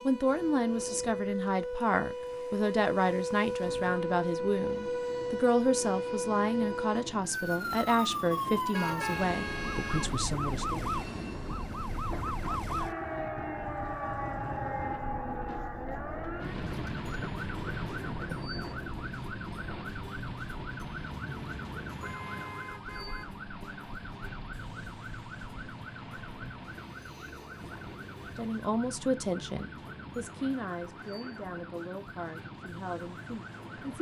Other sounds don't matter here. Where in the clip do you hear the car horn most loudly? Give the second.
9 s.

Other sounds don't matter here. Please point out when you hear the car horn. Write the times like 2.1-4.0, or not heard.
8.7-10.2, 21.4-23.4.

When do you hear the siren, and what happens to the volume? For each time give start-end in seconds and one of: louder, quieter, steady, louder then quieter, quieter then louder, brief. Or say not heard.
0.0-33.9 quieter.